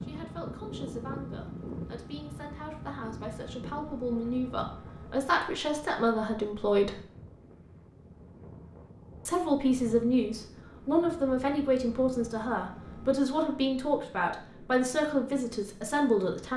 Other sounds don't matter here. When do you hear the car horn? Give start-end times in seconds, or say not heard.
not heard.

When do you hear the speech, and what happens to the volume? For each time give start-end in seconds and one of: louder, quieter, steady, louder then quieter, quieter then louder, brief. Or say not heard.
0.0-7.0 louder
9.2-16.5 steady.